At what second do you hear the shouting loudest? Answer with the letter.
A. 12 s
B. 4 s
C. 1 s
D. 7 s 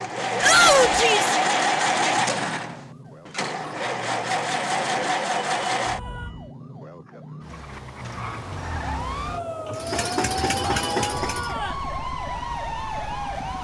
C.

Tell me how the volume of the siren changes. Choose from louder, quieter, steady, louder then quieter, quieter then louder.
louder.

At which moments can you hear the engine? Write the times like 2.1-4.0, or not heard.
0.0-6.5, 9.7-13.5.